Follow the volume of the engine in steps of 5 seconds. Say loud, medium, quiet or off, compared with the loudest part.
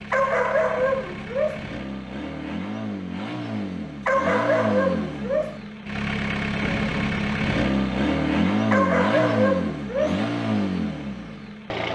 medium, loud, loud.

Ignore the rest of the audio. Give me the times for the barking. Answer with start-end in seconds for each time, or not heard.
0.1-1.6, 4.0-5.6, 8.7-10.2.